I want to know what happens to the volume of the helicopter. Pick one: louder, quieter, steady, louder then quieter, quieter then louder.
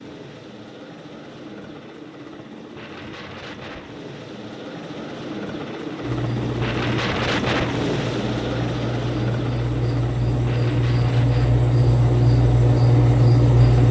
louder then quieter.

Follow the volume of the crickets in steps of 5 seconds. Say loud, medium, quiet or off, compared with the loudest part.
off, medium, loud.